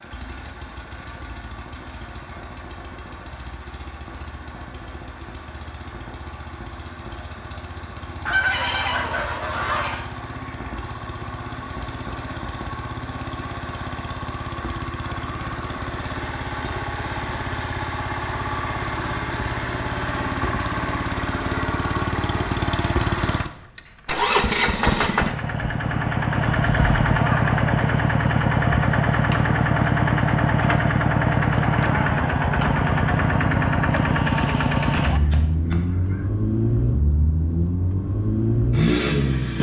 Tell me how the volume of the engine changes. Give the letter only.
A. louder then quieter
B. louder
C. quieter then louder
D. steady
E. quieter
B.